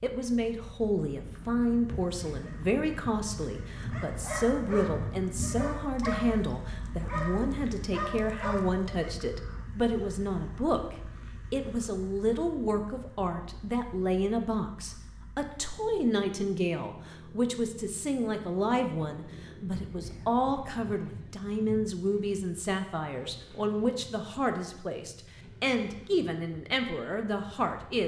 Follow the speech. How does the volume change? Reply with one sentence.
The loudness of the speech stays about the same.